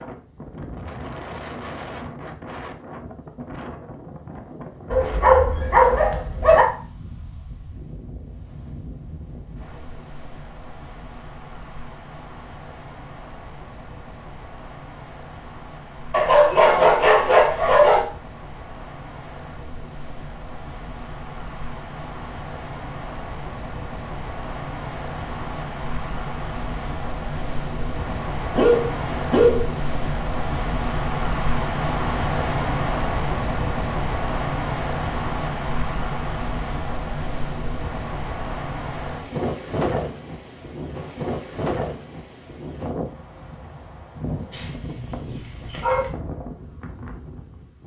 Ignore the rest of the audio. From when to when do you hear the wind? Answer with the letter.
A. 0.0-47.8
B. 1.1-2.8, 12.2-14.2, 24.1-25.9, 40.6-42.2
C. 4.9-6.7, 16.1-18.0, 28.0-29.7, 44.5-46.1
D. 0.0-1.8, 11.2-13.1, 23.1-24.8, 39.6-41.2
A.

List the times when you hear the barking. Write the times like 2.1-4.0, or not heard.
4.9-6.7, 16.1-18.0, 28.0-29.7, 44.5-46.1.